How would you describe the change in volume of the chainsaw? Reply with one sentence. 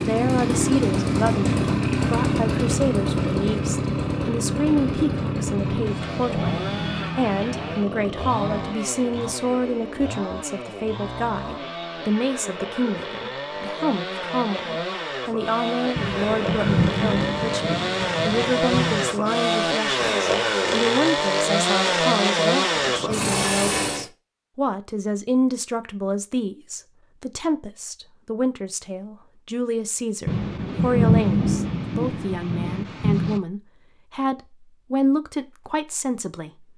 The volume of the chainsaw goes down, then up.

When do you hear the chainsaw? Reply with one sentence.
The chainsaw can be heard from 0.0 to 24.1 s.